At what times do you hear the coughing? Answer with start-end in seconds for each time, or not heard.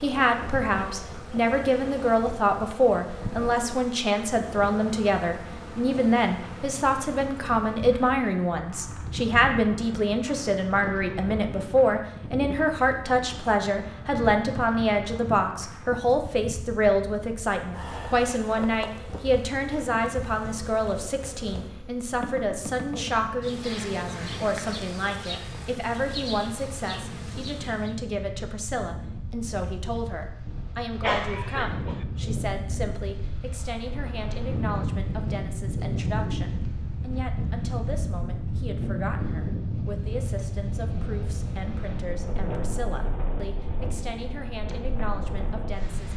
31.0-32.0.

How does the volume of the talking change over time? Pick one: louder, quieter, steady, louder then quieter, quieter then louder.
quieter.